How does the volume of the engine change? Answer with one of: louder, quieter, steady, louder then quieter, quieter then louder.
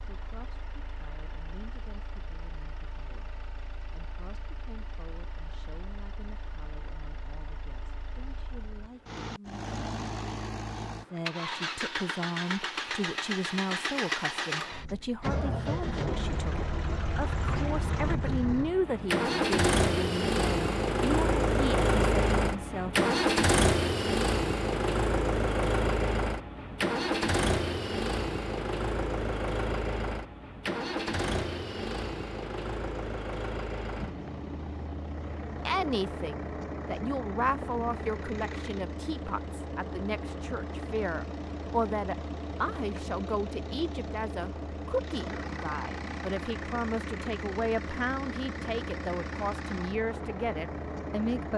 louder then quieter.